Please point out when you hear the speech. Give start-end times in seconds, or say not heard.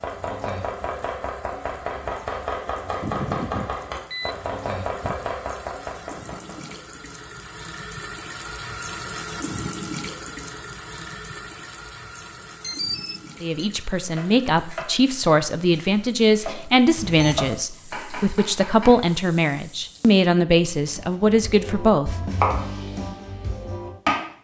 13.4-22.2.